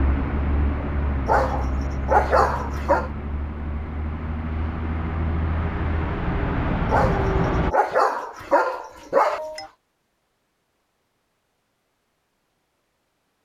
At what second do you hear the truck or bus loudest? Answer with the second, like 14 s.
7 s.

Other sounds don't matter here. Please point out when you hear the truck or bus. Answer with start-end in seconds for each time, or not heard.
0.0-7.8.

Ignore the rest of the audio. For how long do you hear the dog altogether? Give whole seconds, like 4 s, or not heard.
5 s.